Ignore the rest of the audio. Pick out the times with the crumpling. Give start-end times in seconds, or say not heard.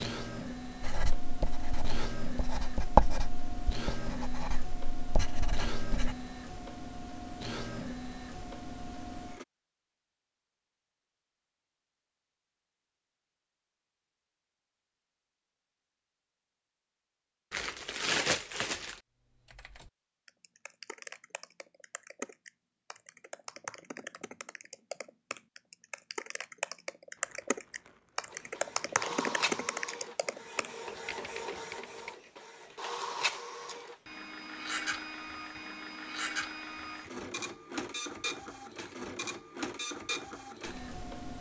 17.5-19.0, 27.1-28.6.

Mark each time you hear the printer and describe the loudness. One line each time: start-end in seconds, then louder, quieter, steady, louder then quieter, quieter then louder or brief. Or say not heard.
0.0-9.4 steady
28.3-41.3 steady.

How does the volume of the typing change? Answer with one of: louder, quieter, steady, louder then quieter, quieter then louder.
louder.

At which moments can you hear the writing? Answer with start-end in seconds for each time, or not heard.
0.8-6.2.